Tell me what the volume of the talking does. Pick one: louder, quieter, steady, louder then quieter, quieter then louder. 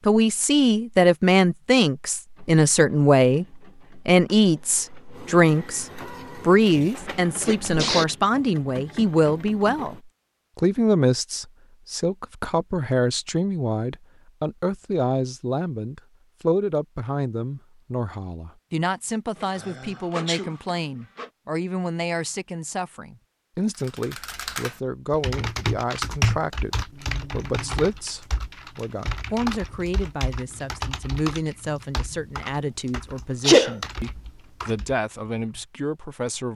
quieter.